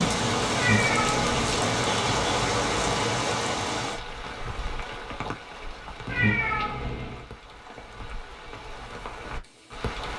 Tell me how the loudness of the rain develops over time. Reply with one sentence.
The loudness of the rain goes down.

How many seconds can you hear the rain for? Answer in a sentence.
You can hear the rain for 10 seconds altogether.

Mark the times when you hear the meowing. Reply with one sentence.
You can hear the meowing from 0.6 to 1.4 s and from 6.0 to 7.2 s.